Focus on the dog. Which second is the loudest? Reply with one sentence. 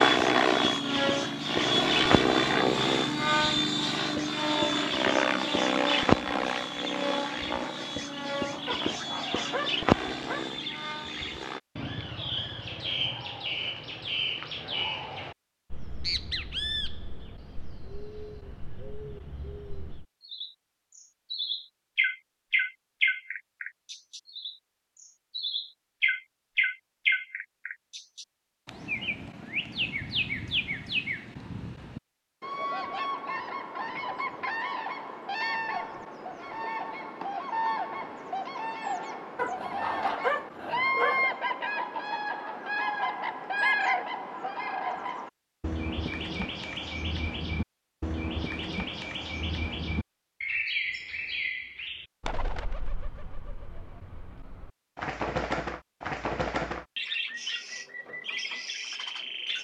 The loudest moment of the dog is at 40 seconds.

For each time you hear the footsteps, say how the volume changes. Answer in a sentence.
You can't hear the footsteps here.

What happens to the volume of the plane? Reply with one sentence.
The loudness of the plane goes down.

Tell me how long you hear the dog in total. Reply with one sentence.
You can hear the dog for 4 seconds altogether.